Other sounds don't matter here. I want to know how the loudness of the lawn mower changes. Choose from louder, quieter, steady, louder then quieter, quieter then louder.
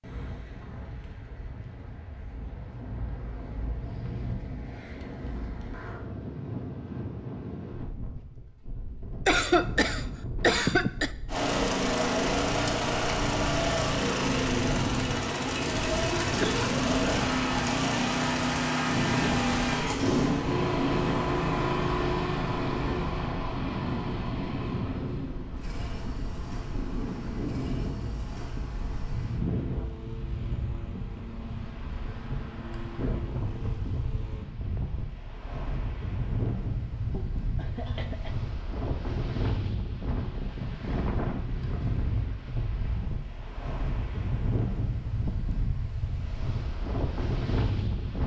quieter.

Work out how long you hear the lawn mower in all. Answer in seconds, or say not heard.
23 s.